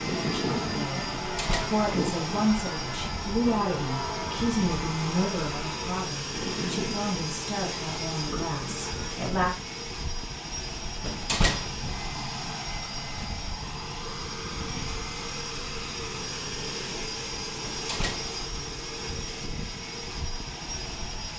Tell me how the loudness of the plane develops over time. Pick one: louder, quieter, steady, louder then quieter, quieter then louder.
steady.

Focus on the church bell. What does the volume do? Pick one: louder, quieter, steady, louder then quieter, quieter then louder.
quieter.